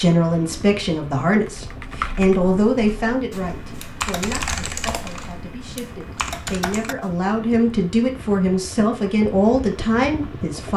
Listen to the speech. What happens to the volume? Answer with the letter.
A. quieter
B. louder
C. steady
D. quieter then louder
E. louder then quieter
D.